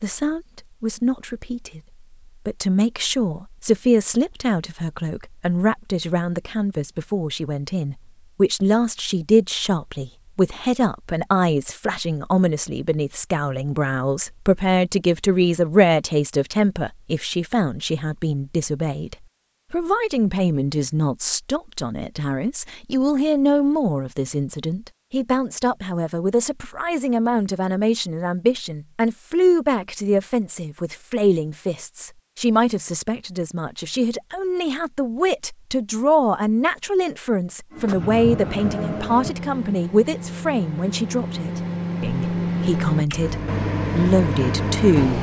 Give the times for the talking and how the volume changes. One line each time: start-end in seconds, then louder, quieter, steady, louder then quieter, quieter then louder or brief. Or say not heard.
0.0-1.8 brief
2.5-45.1 steady.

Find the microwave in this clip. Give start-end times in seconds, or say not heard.
37.7-45.1.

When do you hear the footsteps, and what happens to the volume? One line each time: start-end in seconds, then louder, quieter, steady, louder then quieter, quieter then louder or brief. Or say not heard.
not heard.